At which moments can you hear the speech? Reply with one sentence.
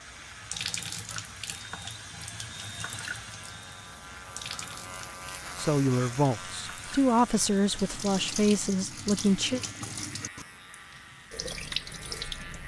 You can hear the speech from 5.5 to 9.6 s.